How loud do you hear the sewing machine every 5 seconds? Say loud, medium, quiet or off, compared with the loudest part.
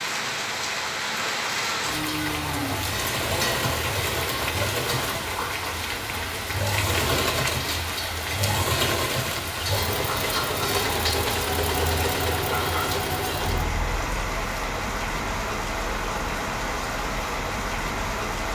loud, loud, loud, off.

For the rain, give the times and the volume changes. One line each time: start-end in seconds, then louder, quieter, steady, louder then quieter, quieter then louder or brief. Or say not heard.
0.0-18.5 steady.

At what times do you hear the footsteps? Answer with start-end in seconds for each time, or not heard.
not heard.